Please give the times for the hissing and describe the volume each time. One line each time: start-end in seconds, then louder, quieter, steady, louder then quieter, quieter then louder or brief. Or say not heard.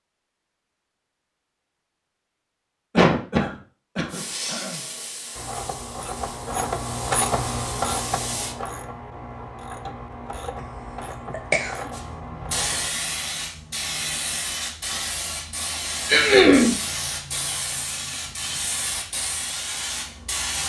4.1-8.6 quieter then louder
11.9-20.6 steady.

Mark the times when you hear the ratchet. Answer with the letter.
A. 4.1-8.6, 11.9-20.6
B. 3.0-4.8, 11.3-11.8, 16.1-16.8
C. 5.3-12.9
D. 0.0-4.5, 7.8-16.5
C.